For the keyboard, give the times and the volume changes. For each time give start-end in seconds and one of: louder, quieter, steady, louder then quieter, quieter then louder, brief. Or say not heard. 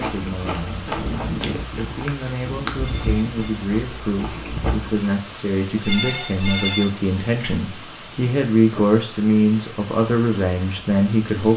not heard.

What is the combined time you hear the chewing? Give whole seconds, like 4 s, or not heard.
5 s.